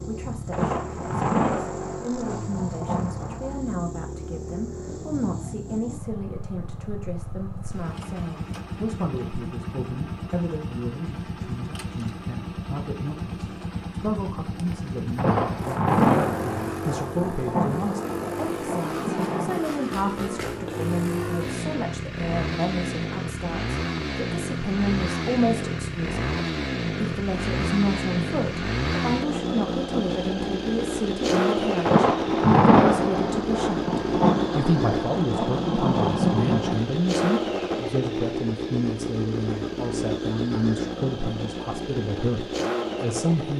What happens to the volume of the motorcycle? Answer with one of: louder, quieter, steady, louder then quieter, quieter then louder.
louder.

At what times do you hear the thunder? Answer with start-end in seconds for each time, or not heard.
0.5-3.6, 15.2-19.6, 31.9-36.8.